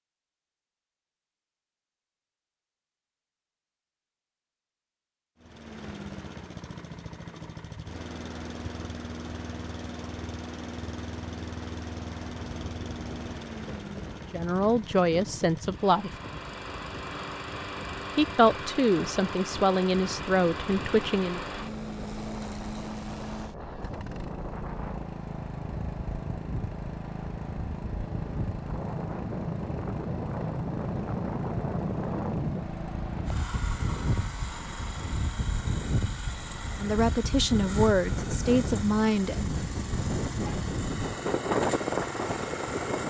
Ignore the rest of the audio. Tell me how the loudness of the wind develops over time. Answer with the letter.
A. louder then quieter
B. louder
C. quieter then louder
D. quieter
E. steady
B.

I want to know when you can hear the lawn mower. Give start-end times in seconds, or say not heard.
5.4-43.0.